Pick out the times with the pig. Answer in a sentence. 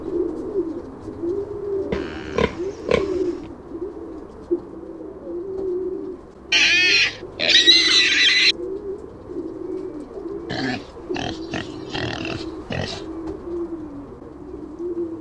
You can hear the pig from 1.9 to 3.1 s, from 6.5 to 8.6 s and from 10.4 to 13.1 s.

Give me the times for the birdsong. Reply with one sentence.
You can hear the birdsong from 0.0 to 15.1 s.